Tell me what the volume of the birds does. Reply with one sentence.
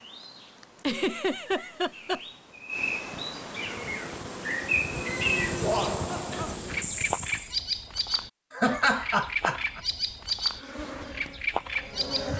The volume of the birds goes up.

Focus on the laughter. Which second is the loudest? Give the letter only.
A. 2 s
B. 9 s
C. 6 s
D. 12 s
B.